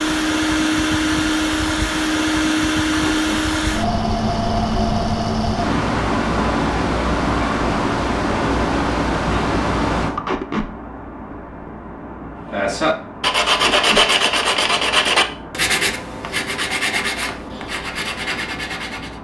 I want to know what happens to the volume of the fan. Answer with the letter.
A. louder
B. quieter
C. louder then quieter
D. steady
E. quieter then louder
B.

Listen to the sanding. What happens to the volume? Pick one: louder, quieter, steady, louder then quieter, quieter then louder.
quieter.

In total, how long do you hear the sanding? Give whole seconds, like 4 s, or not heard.
7 s.